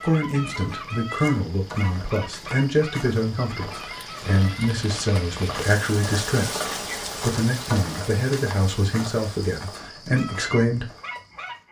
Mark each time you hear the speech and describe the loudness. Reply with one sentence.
The speech can be heard from 0.0 to 10.9 s, at a steady volume.